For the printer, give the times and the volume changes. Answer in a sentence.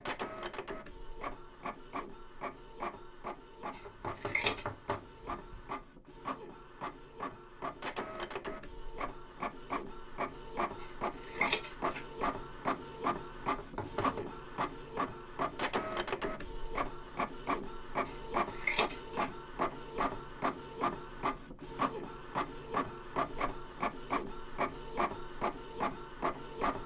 You can hear the printer from 0.0 to 26.8 s, getting louder.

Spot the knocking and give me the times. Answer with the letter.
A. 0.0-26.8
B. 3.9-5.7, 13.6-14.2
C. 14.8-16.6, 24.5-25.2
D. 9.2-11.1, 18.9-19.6
B.